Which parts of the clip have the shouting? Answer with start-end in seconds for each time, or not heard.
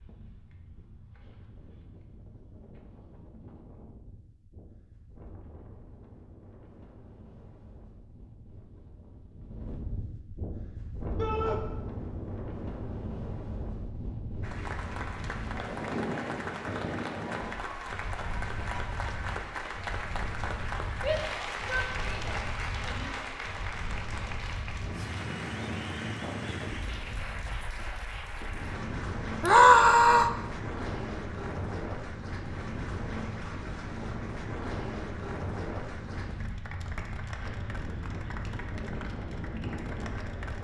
11.2-11.6, 21.0-23.1, 29.4-30.3.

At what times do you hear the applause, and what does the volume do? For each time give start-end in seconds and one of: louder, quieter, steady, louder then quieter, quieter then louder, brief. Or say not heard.
14.4-40.5 quieter.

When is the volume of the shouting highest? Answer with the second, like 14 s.
30 s.